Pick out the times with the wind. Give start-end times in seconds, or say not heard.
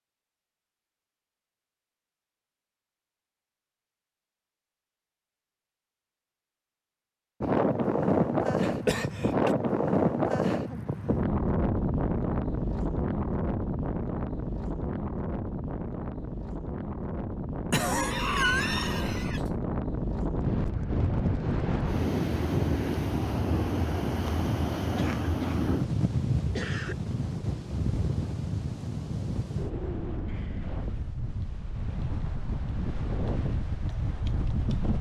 7.4-34.9.